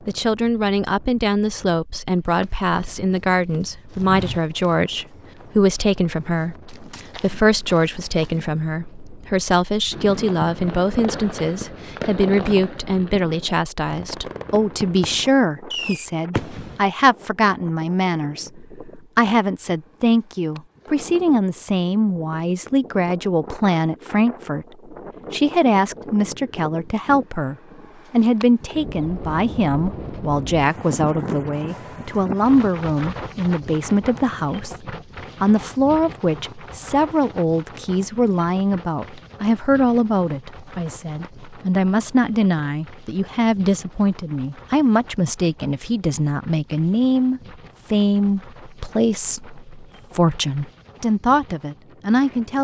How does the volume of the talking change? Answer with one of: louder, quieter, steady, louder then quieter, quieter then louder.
steady.